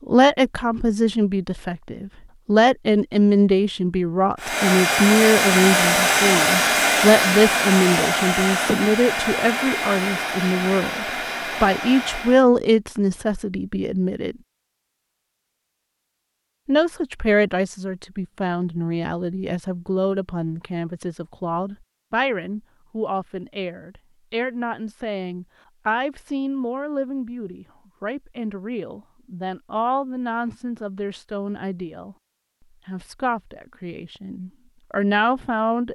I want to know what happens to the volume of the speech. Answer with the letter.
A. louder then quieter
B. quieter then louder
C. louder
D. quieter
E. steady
D.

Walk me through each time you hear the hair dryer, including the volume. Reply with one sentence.
The hair dryer can be heard from 4.3 to 12.4 s, getting quieter.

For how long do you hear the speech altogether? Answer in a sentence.
The speech can be heard for 33 seconds in total.